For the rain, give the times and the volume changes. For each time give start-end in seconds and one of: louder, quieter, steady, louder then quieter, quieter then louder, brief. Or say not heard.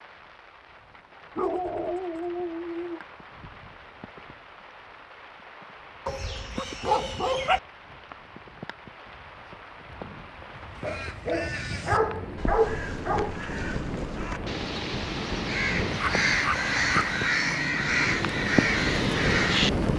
0.0-19.9 louder.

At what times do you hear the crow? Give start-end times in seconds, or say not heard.
10.5-19.7.